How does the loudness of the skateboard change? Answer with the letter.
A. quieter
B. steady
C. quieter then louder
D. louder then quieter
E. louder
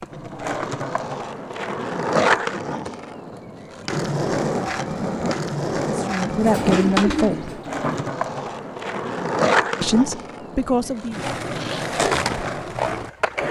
B.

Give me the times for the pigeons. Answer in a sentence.
You can hear the pigeons from 6.4 to 8.1 s.